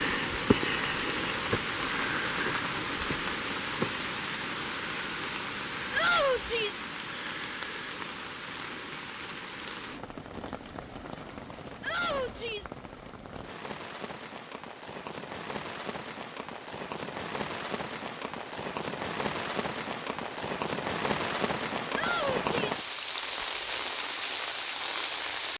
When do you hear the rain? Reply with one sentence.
You can hear the rain from 0.0 to 25.5 s.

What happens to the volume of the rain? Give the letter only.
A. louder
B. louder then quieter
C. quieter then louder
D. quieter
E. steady
C.